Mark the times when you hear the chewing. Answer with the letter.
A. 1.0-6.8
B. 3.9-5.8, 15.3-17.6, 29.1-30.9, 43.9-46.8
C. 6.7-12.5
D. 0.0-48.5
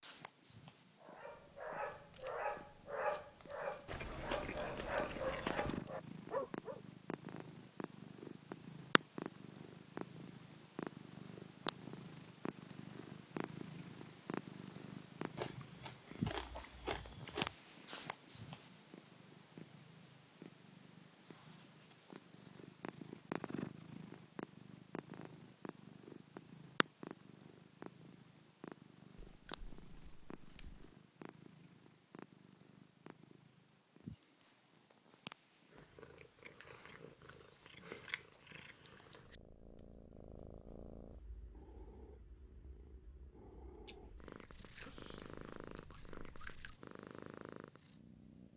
B.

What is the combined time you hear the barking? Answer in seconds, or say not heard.
6 s.